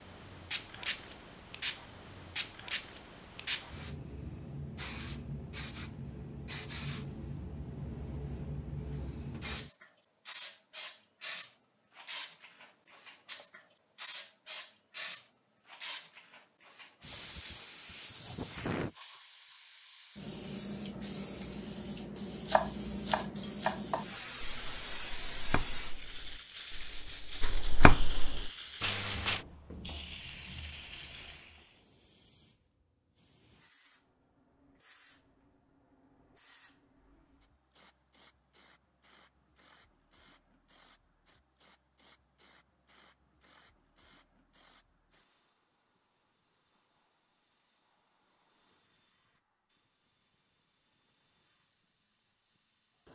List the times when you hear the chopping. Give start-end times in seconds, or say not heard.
22.4-28.5.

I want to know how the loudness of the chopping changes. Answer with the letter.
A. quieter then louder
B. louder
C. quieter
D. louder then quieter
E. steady
A.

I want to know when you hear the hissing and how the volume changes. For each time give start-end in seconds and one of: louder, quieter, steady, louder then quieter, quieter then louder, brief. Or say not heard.
0.0-53.1 quieter.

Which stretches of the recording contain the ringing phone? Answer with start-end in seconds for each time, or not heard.
28.8-29.4.